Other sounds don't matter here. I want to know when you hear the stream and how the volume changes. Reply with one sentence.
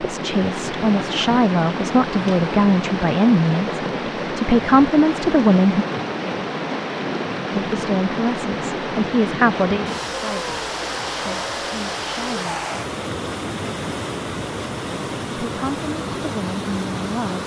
The stream can be heard from 0.0 to 17.4 s, at a steady volume.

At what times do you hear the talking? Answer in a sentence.
The talking can be heard from 0.0 to 5.8 s, from 7.5 to 12.6 s and from 15.2 to 17.4 s.